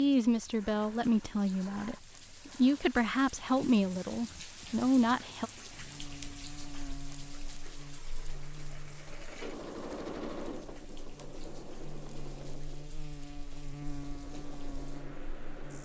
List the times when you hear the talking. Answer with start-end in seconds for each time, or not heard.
0.0-5.5.